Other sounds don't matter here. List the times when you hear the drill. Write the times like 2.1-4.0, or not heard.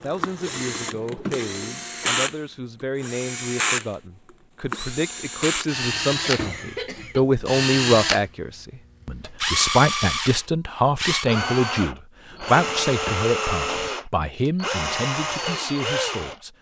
0.0-6.5, 7.5-16.4.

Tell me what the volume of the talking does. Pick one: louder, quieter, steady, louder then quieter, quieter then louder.
louder then quieter.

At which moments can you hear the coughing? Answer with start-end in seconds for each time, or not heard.
6.2-7.2.